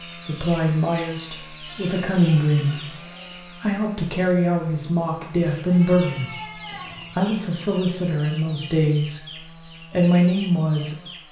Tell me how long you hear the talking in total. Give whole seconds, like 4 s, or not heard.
9 s.